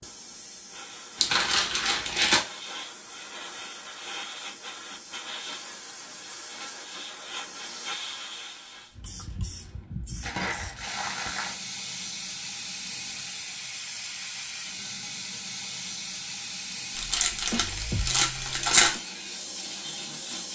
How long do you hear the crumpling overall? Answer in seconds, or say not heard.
5 s.